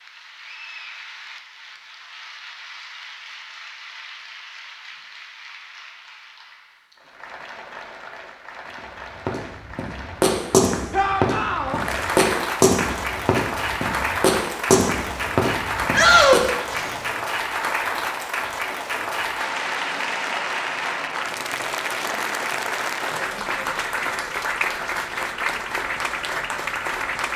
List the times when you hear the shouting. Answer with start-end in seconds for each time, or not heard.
10.9-11.8, 15.9-16.6.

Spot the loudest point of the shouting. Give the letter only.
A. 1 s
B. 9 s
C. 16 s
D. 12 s
C.